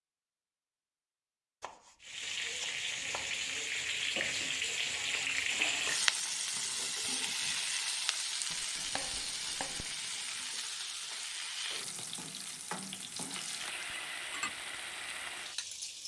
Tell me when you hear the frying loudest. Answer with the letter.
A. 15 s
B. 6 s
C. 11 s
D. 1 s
B.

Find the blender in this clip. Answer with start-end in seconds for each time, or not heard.
not heard.